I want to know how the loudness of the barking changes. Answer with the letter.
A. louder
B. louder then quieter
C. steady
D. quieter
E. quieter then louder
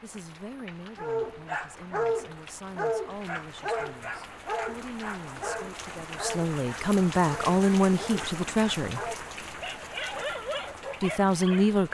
D.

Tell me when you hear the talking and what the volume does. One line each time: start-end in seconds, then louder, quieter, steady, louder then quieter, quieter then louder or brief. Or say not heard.
0.0-9.0 louder
11.0-11.8 brief.